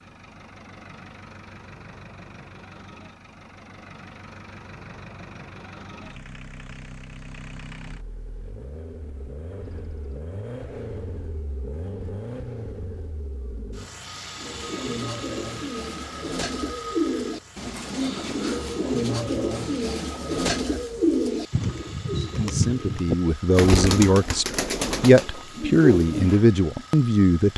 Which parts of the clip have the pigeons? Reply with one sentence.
You can hear the pigeons from 14.3 to 26.4 s.